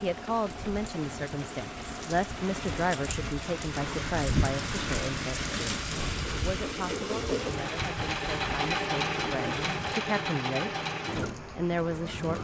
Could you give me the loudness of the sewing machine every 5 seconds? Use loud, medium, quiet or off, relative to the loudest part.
medium, loud, loud.